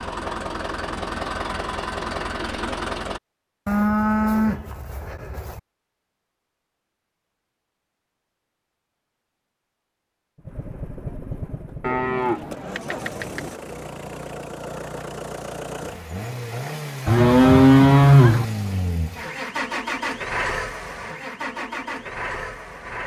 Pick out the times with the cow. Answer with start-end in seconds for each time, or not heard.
3.6-5.6, 11.8-13.5, 17.1-18.4.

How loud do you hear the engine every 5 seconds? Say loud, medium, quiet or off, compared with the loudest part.
loud, off, medium, loud, loud.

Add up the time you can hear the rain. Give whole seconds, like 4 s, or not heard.
not heard.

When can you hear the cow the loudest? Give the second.
18 s.